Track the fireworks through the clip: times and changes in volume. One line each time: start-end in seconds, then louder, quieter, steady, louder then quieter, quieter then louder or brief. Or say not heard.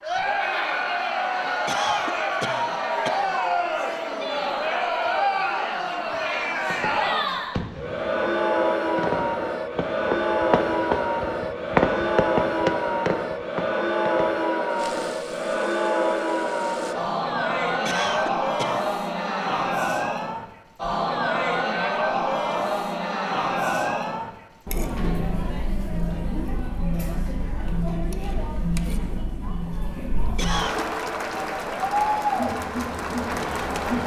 6.6-16.9 louder then quieter.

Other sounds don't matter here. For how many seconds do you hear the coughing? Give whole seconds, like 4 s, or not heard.
3 s.